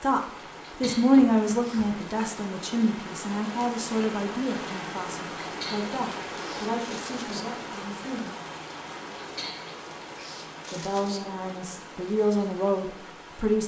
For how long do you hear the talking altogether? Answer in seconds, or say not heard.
11 s.